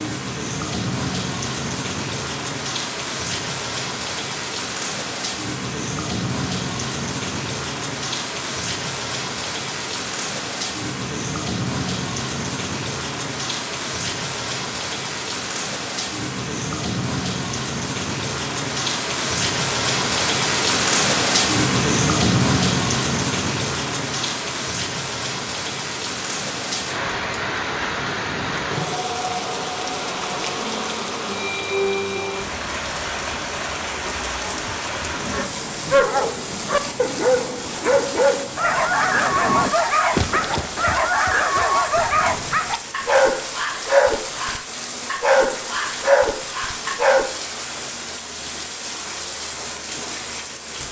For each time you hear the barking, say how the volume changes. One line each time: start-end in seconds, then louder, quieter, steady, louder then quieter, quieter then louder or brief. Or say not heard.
35.3-47.3 steady.